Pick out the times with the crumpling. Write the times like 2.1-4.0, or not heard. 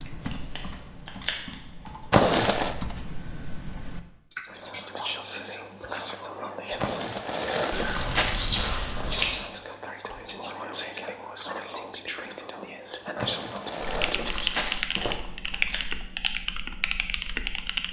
2.1-2.8, 6.8-8.7, 13.2-15.2.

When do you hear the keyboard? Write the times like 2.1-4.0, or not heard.
0.0-4.8, 13.8-17.8.